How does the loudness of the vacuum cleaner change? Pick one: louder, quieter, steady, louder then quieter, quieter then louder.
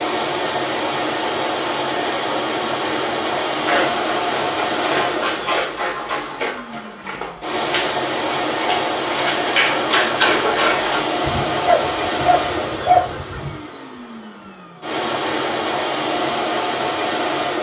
steady.